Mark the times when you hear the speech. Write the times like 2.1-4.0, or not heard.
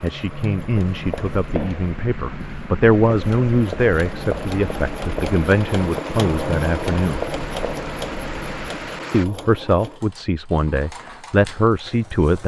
0.0-7.2, 9.1-12.4.